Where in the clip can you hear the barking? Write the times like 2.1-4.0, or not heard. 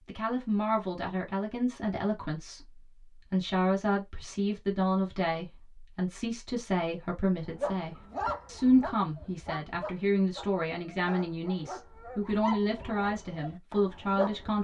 7.5-14.5.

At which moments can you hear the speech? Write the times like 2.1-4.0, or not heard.
0.1-14.5.